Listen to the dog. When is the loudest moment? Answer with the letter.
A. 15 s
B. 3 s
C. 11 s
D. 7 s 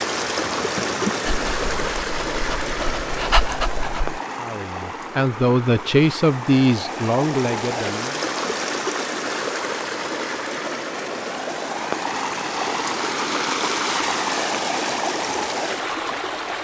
B.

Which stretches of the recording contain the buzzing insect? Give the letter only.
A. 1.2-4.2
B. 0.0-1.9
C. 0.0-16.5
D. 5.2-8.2
B.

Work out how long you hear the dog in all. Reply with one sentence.
The dog can be heard for 3 seconds in total.